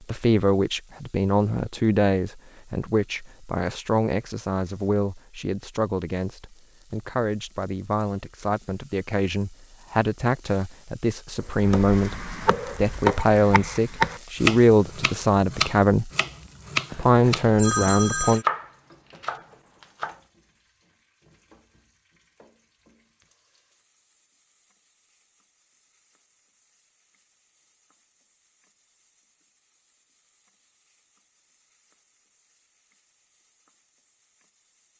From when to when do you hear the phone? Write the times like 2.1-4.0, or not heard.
16.9-18.4.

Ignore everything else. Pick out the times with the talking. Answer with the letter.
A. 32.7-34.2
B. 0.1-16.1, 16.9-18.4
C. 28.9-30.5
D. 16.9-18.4
B.